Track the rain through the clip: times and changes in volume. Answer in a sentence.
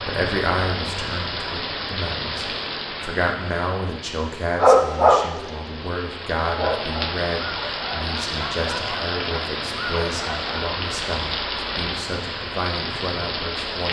You can hear the rain from 0.0 to 13.8 s, getting quieter then louder.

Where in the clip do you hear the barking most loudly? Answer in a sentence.
The loudest moment of the barking is at 5 seconds.